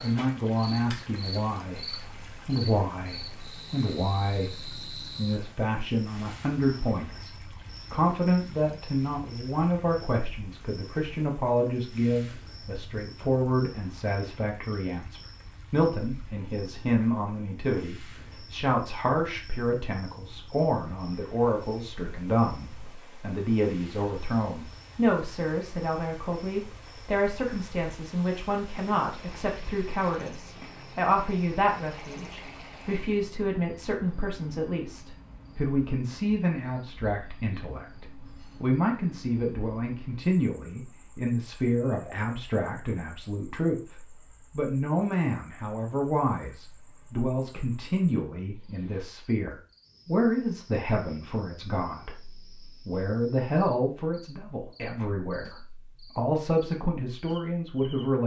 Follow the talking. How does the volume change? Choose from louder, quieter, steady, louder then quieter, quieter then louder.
steady.